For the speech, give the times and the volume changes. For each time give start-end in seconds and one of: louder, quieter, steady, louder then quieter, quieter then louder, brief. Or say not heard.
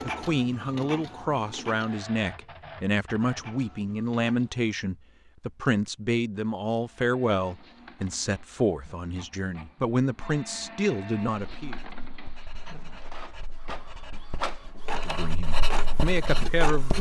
0.0-11.8 steady
14.9-16.9 brief.